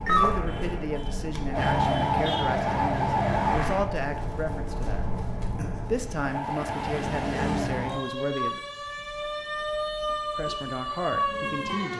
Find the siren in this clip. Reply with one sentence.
You can hear the siren from 0.0 to 11.9 s.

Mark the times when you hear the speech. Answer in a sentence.
You can hear the speech from 0.1 to 8.6 s and from 10.3 to 11.9 s.